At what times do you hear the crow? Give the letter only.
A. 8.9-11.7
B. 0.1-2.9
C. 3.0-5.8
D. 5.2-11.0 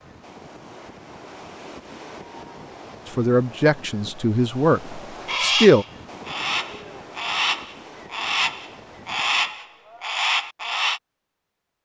D.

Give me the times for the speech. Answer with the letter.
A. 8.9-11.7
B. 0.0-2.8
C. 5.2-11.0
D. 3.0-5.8
D.